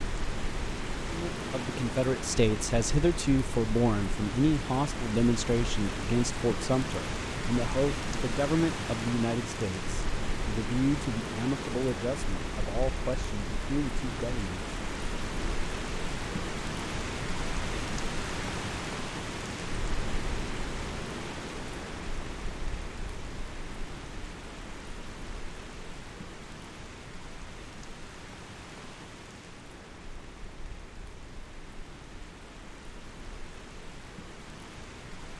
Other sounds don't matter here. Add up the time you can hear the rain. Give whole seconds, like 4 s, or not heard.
35 s.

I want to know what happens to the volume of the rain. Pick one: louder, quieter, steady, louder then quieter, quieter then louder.
quieter.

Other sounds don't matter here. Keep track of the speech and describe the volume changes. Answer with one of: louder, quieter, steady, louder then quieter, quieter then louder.
quieter.